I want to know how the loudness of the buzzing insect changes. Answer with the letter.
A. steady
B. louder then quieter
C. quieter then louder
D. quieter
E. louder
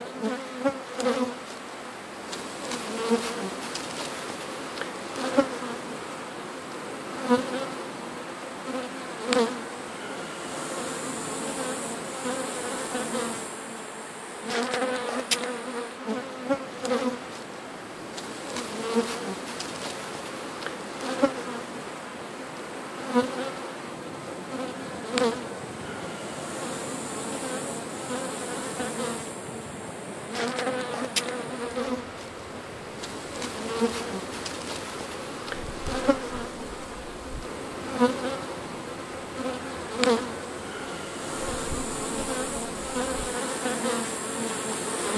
A.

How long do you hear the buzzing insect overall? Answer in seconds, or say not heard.
45 s.